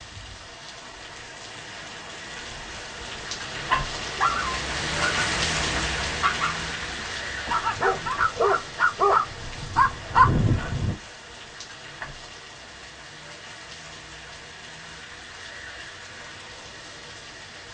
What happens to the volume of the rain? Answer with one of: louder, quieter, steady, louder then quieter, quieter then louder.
louder then quieter.